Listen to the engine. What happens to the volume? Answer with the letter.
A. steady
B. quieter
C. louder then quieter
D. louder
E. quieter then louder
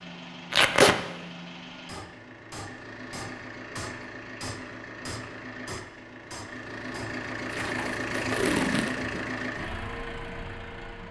D.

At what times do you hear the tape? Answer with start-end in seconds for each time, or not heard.
0.5-0.9, 7.5-9.2.